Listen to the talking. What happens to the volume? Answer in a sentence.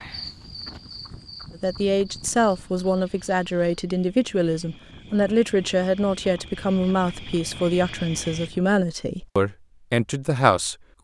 The loudness of the talking stays about the same.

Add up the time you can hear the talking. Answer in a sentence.
You can hear the talking for 9 seconds altogether.